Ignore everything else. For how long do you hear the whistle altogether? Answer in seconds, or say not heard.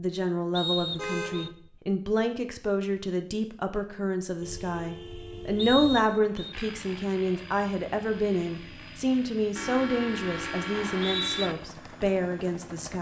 3 s.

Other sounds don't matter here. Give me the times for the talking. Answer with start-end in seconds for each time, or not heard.
0.0-12.9.